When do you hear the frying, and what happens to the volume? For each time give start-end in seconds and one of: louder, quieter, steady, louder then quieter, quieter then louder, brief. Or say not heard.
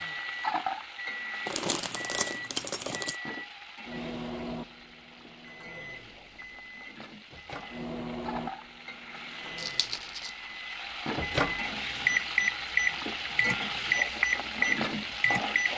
0.0-15.7 quieter then louder.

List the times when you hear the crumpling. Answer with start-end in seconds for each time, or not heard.
1.4-3.1, 9.6-10.3.